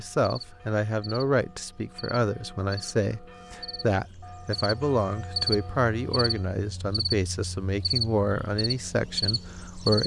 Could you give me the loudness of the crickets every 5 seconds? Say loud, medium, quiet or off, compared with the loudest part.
quiet, loud.